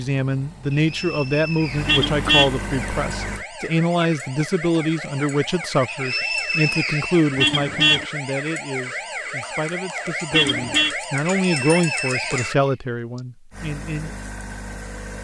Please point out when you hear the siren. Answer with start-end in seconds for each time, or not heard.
2.6-12.6.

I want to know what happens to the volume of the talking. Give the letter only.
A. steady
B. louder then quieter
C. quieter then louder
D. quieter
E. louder
C.